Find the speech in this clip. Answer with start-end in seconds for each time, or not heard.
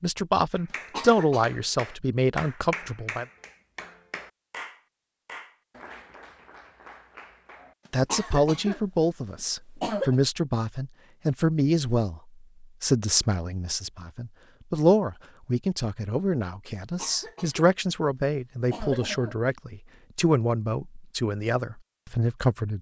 0.0-3.2, 7.9-22.7.